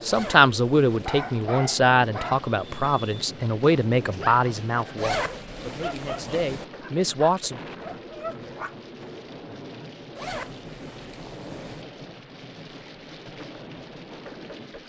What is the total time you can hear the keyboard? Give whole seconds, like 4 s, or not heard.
not heard.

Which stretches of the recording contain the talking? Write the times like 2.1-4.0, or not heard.
0.1-7.6.